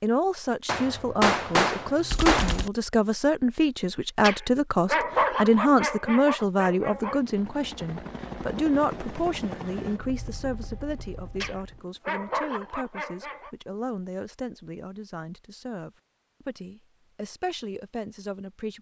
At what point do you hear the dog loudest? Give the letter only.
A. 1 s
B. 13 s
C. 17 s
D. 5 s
D.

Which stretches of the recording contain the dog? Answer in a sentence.
The dog can be heard from 4.2 to 7.2 s and from 11.4 to 13.5 s.